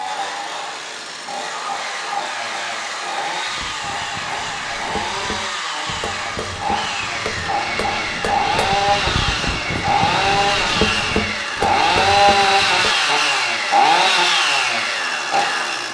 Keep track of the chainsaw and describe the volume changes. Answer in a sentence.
The loudness of the chainsaw goes up.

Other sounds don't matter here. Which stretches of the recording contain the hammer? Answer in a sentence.
You can hear the hammer from 3.5 to 12.9 s.